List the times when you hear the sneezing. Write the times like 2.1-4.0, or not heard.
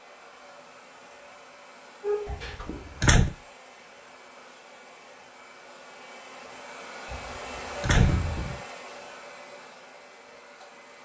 2.0-2.9.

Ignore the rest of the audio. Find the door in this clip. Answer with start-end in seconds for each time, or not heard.
2.2-3.3, 7.1-8.6.